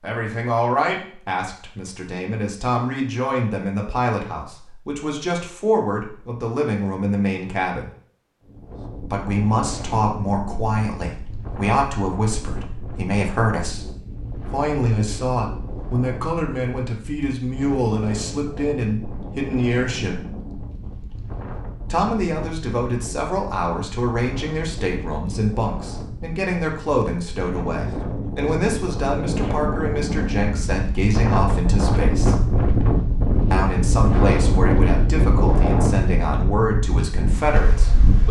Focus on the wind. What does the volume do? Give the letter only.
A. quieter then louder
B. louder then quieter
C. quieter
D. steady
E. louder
E.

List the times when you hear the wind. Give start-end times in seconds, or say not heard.
8.4-38.2.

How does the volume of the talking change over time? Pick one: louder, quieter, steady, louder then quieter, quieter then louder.
steady.